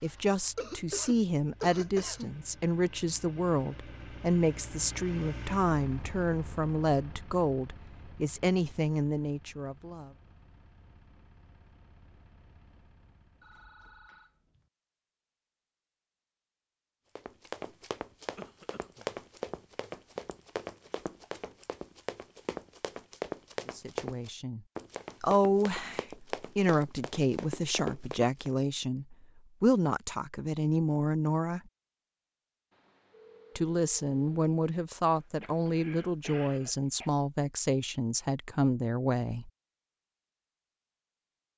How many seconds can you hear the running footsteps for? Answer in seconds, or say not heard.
11 s.